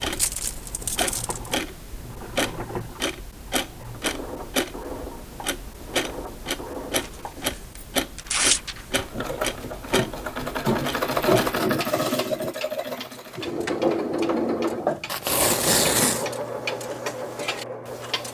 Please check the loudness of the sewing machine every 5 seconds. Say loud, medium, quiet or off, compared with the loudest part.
quiet, medium, loud, medium.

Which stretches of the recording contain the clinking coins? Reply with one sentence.
The clinking coins can't be heard in this clip.